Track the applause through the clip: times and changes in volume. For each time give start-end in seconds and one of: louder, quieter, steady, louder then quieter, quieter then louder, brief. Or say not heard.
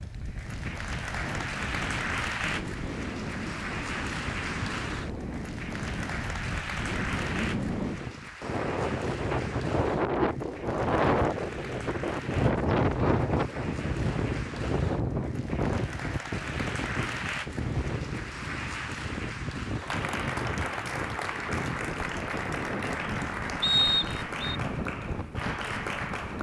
0.0-26.3 quieter then louder.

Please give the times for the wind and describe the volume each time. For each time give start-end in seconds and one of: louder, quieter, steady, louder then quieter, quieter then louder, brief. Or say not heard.
0.0-26.3 louder then quieter.